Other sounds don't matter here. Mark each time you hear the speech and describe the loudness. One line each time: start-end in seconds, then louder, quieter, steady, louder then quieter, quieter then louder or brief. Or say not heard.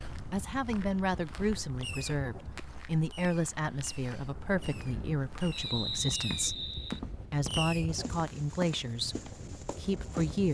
0.3-10.4 steady.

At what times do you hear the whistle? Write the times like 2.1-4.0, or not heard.
5.5-7.0.